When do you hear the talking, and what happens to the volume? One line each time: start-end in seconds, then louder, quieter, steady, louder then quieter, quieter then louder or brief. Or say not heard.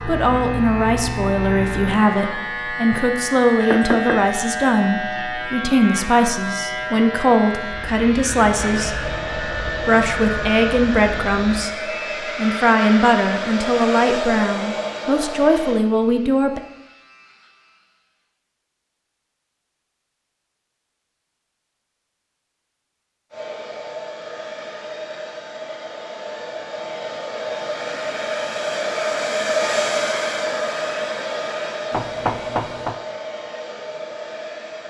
0.0-16.6 steady.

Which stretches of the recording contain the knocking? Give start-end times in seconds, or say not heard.
3.7-4.2, 31.9-33.0.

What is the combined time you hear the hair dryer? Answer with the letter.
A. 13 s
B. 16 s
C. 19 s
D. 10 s
C.